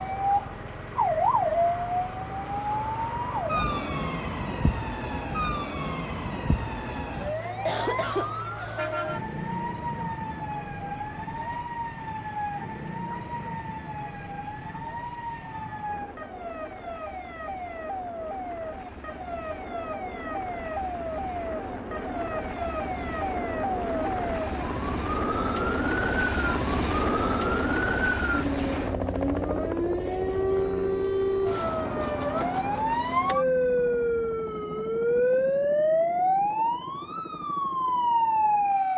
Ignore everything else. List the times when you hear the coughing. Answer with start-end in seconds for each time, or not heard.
7.2-8.8.